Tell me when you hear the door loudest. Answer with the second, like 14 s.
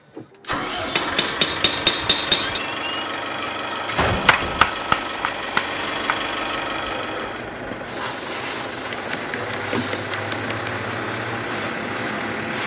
4 s.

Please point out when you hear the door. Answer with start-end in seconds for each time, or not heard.
2.2-4.7.